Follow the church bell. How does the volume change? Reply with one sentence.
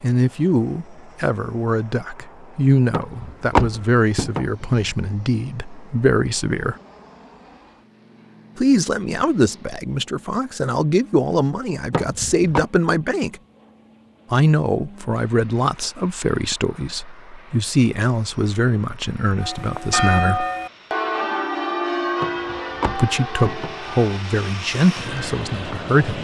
The loudness of the church bell goes down.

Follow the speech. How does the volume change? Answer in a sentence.
The loudness of the speech stays about the same.